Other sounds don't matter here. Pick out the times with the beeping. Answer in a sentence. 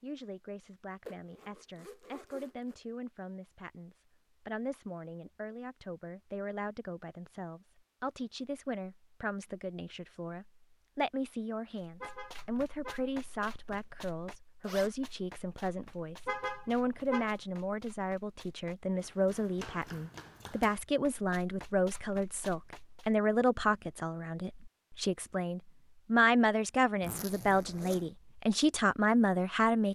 The beeping can't be heard in this clip.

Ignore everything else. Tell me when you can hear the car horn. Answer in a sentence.
The car horn can be heard from 12.0 to 13.1 s and from 16.2 to 17.4 s.